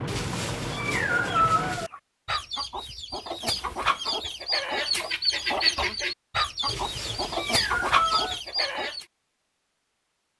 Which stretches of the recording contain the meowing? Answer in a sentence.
The meowing can be heard from 0.1 to 1.9 s and from 6.7 to 8.4 s.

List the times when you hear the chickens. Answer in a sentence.
You can hear the chickens from 1.1 to 9.1 s.